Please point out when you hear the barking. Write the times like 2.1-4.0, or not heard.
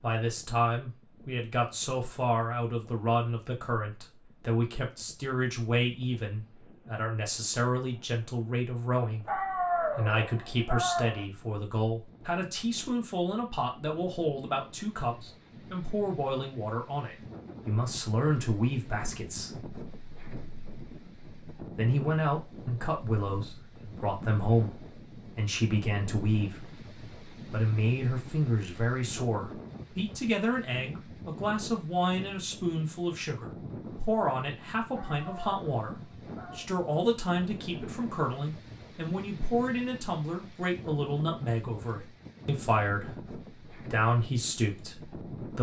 9.2-11.2, 34.9-36.7.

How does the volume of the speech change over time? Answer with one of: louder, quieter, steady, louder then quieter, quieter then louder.
steady.